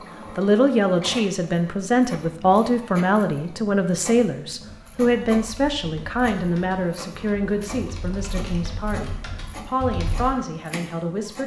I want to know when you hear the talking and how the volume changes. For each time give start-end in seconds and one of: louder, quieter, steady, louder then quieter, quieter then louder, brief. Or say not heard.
0.3-11.4 quieter.